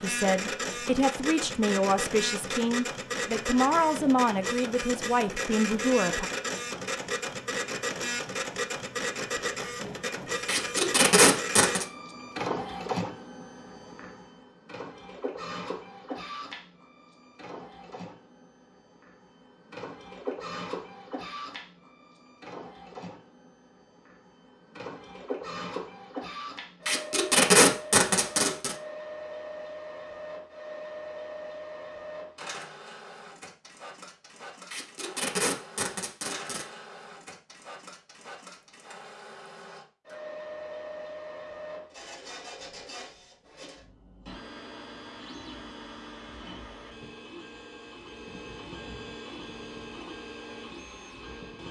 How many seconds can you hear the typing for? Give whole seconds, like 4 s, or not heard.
not heard.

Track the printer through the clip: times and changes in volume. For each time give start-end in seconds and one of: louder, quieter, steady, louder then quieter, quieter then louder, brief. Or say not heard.
0.0-51.6 quieter.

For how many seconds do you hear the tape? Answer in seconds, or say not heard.
5 s.